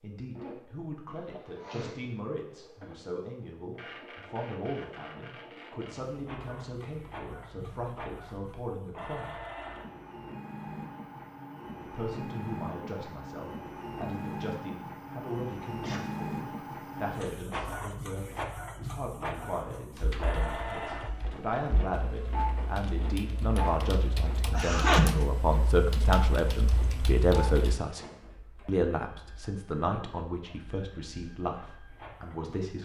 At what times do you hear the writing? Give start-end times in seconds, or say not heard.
not heard.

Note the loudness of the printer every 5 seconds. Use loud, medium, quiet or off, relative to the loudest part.
medium, medium, loud, loud, loud, medium, quiet.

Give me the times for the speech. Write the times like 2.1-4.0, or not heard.
0.0-9.3, 11.8-28.0, 28.6-32.7.